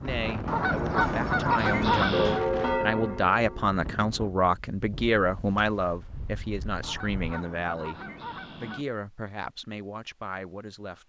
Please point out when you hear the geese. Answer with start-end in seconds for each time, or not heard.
0.5-2.4, 6.8-8.8.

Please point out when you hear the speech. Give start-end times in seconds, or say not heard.
0.0-11.0.